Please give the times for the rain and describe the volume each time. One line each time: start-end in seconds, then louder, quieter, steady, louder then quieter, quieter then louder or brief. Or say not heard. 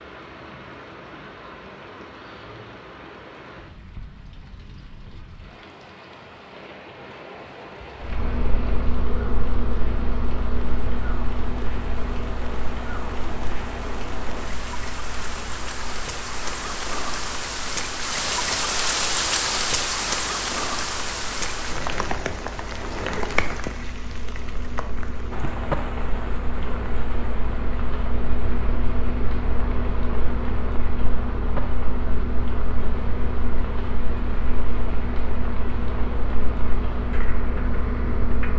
0.0-38.5 louder then quieter.